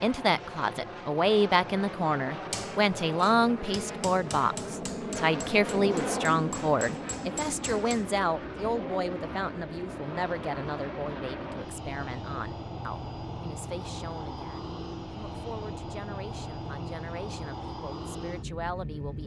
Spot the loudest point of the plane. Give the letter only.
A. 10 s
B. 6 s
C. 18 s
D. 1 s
B.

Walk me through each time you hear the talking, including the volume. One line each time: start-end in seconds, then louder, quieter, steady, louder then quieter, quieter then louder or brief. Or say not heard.
0.0-19.2 quieter.